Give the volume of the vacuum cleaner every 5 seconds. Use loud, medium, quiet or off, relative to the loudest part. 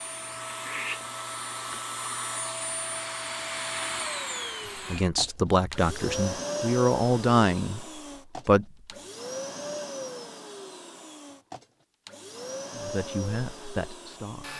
loud, loud, medium.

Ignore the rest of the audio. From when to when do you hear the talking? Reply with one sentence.
The talking can be heard from 4.9 to 8.7 s and from 12.8 to 14.5 s.